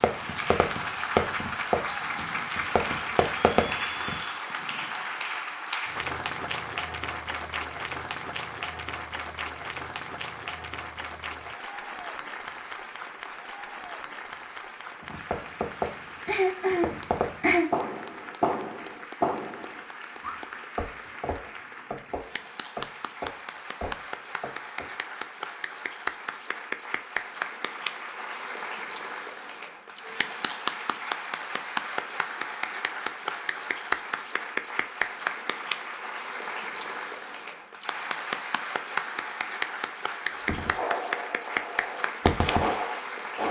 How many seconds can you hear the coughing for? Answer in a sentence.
You can hear the coughing for 2 seconds altogether.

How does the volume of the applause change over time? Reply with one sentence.
The volume of the applause goes down, then up.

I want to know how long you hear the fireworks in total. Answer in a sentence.
The fireworks can be heard for 17 seconds in total.